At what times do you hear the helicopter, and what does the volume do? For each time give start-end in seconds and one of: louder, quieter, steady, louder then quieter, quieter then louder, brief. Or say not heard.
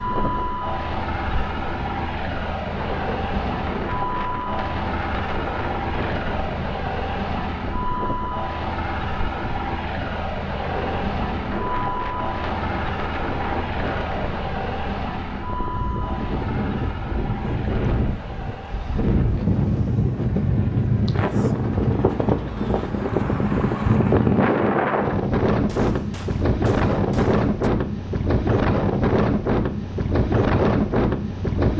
0.0-25.0 quieter.